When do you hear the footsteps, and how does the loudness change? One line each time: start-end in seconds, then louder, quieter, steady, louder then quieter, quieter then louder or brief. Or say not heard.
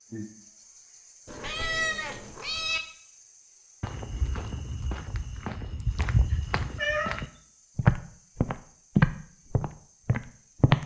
3.8-10.8 louder then quieter.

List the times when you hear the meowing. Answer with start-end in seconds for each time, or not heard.
1.2-2.8, 6.3-7.2.